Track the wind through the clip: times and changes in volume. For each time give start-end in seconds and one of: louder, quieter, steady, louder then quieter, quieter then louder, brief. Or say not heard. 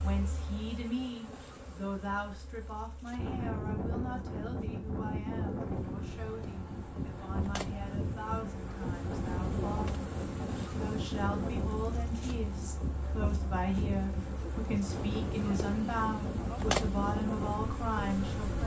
3.1-18.6 steady.